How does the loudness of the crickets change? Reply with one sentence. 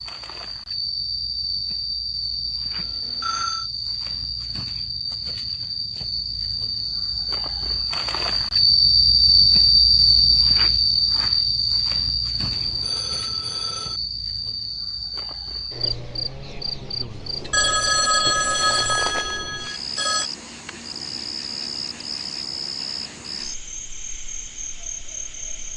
The loudness of the crickets goes up, then down.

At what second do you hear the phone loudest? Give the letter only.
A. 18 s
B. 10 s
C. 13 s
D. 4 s
A.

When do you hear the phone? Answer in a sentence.
The phone can be heard from 2.8 to 3.7 s, from 12.4 to 14.0 s and from 17.5 to 20.2 s.